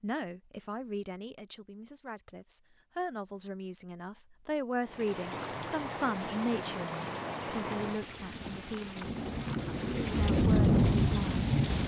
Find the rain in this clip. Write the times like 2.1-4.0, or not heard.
4.8-11.8.